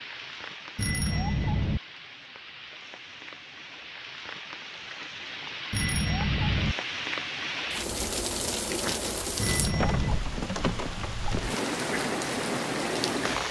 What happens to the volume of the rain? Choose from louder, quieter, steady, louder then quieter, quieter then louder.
louder.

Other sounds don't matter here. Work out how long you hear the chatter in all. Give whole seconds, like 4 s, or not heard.
not heard.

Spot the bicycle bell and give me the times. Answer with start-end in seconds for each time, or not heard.
0.8-1.8, 5.7-6.8, 9.3-10.2.